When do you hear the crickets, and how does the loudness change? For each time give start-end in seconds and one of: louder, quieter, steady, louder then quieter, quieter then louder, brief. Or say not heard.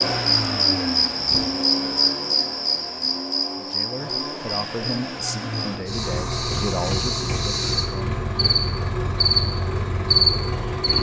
0.0-10.9 quieter then louder.